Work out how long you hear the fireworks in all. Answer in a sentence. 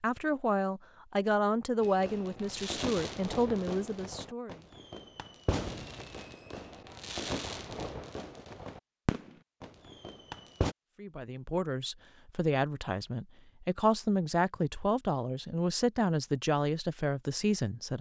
The fireworks can be heard for 9 seconds in total.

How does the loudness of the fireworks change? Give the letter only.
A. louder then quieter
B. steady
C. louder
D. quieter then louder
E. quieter
D.